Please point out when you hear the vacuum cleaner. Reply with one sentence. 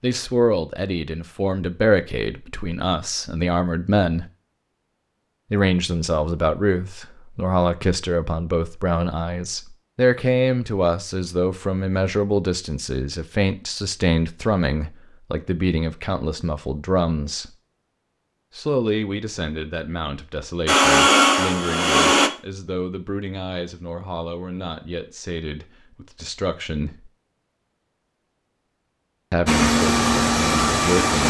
The vacuum cleaner can be heard from 20.6 to 22.3 s and from 29.4 to 31.2 s.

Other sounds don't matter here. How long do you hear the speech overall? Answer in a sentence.
The speech can be heard for 27 seconds in total.